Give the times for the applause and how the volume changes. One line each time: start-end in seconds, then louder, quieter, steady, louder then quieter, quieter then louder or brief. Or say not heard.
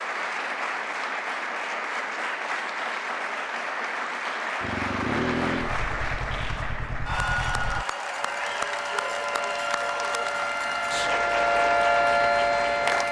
0.0-13.0 steady.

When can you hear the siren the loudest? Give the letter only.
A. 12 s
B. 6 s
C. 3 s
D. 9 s
A.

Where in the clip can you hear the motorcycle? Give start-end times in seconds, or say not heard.
4.6-7.8.